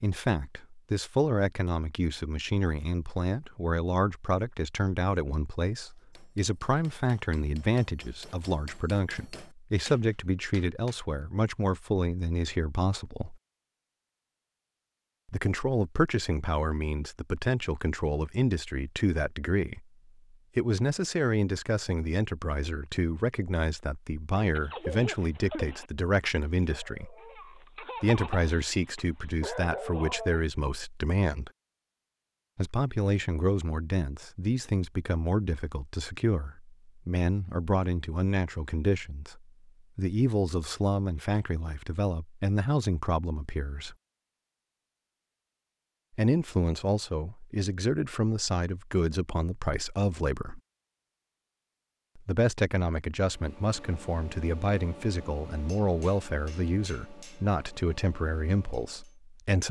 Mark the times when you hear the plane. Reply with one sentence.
You can't hear the plane here.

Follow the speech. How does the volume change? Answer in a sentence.
The volume of the speech stays about the same.